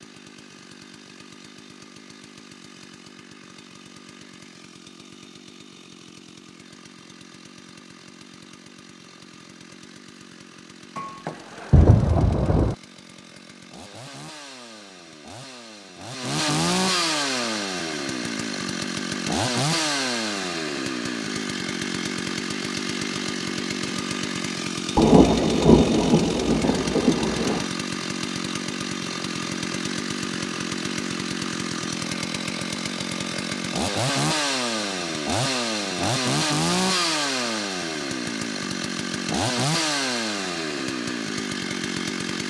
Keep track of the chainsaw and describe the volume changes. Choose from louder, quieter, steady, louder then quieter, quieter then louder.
louder.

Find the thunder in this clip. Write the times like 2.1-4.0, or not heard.
10.9-12.8, 24.9-27.6.